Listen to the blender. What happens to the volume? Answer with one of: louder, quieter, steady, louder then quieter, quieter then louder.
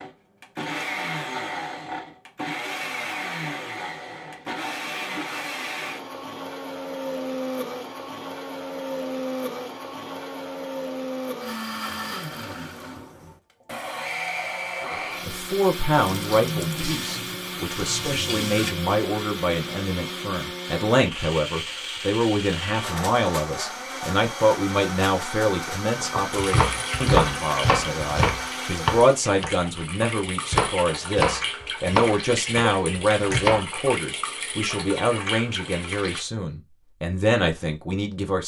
steady.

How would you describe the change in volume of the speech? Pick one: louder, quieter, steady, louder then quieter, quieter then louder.
steady.